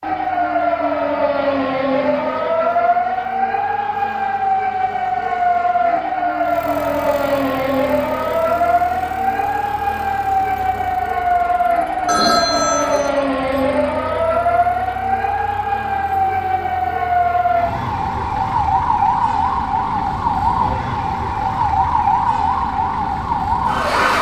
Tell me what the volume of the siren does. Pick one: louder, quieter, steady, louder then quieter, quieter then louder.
steady.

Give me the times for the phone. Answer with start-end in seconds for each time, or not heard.
12.1-13.1.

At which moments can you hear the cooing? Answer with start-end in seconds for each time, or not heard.
not heard.